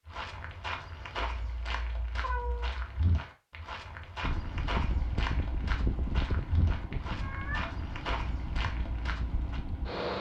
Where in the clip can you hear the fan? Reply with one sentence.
You can hear the fan from 4.2 to 10.1 s.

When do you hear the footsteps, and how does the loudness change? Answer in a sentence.
The footsteps can be heard from 0.1 to 9.6 s, at a steady volume.